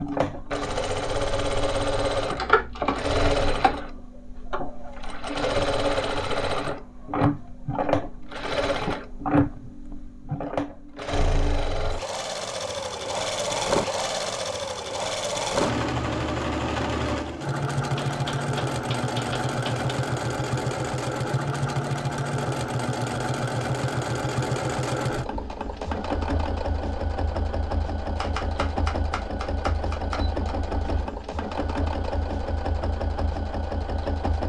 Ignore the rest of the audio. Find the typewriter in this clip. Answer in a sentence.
The typewriter can be heard from 2.4 to 3.8 s, from 17.9 to 19.9 s and from 28.1 to 30.6 s.